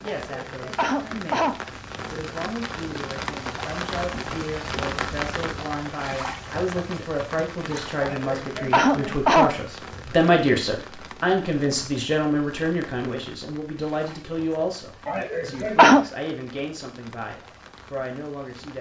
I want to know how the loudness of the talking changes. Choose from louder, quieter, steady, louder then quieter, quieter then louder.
louder then quieter.